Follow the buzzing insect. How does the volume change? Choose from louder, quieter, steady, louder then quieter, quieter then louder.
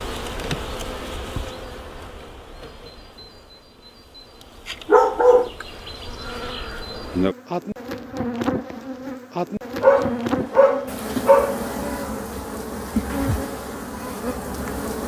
quieter then louder.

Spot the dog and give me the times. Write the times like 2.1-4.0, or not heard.
4.8-5.7, 9.8-11.6.